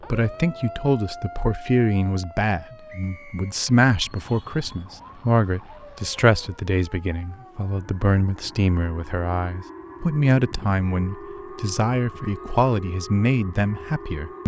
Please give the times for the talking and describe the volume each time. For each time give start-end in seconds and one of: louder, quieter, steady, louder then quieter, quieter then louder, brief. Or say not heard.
0.1-14.4 steady.